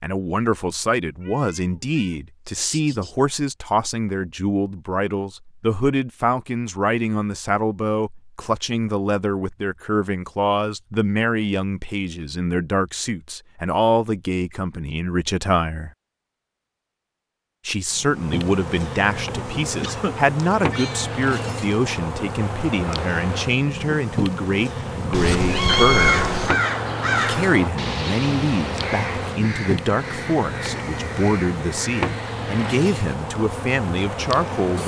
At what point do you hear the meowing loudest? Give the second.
26 s.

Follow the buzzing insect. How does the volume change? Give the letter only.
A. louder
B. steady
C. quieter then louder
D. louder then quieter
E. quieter
B.